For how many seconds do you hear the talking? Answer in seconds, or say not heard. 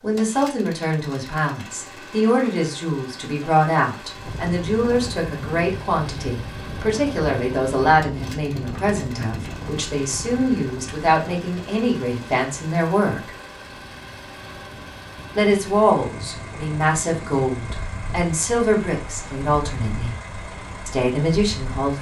19 s.